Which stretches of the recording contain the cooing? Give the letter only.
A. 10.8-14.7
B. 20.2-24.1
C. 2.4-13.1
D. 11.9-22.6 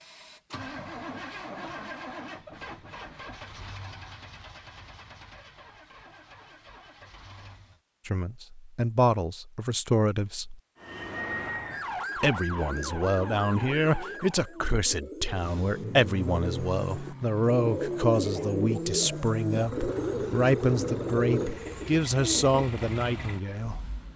D.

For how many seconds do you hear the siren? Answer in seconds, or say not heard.
4 s.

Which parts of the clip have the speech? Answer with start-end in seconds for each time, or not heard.
8.1-10.6, 12.2-23.8.